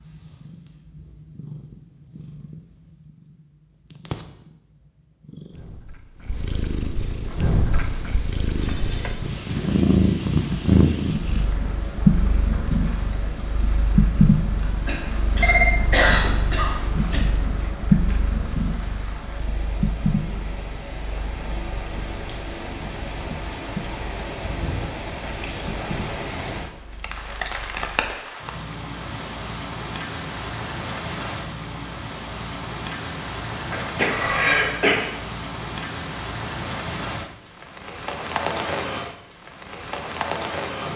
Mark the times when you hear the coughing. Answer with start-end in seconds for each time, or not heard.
14.8-17.2, 33.7-35.0.